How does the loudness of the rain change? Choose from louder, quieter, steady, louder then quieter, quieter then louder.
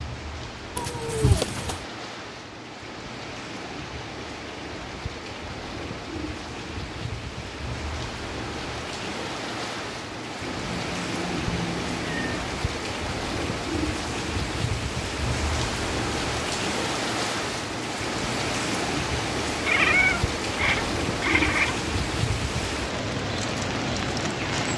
louder.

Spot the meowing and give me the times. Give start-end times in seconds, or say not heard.
0.8-1.9, 10.4-12.4, 19.6-21.8.